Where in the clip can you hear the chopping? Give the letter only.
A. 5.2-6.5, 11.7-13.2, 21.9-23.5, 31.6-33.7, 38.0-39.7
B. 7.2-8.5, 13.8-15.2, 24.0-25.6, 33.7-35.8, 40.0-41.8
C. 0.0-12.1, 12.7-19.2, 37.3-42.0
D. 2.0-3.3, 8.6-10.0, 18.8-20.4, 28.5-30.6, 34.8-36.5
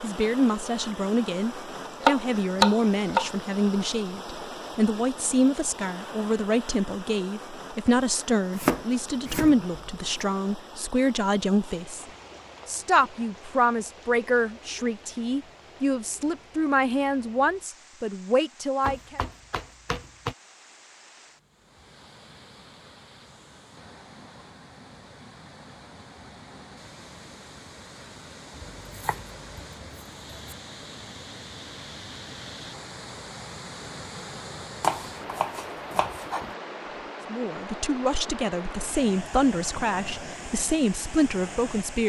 D.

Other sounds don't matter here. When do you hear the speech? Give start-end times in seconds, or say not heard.
0.0-12.1, 12.7-19.2, 37.3-42.0.